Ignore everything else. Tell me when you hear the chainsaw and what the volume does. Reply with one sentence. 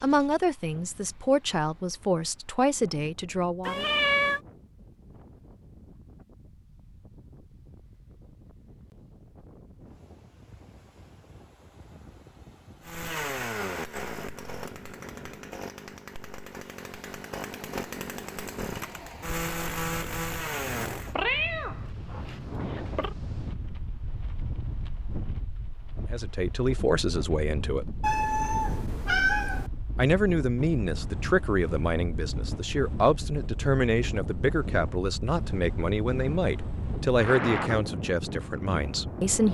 You can hear the chainsaw from 12.8 to 21.1 s, getting quieter then louder.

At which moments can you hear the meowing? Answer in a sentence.
The meowing can be heard from 3.6 to 4.4 s, from 21.1 to 23.1 s and from 28.0 to 29.7 s.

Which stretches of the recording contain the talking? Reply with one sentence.
You can hear the talking from 0.0 to 3.9 s, from 26.1 to 27.9 s and from 29.9 to 39.4 s.